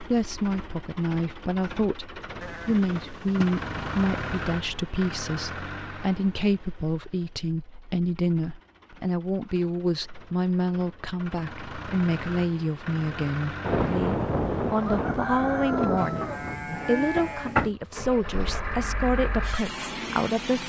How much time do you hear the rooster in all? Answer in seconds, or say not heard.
3 s.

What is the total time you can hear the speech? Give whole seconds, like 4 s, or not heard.
20 s.